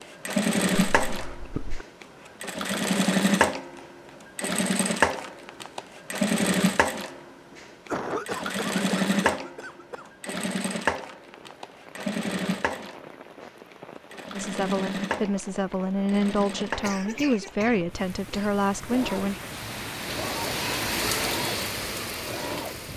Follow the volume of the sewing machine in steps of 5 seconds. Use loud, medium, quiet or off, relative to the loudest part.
loud, loud, medium, medium, medium.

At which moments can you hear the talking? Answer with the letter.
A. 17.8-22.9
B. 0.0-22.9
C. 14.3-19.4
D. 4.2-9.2
C.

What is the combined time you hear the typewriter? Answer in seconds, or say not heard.
not heard.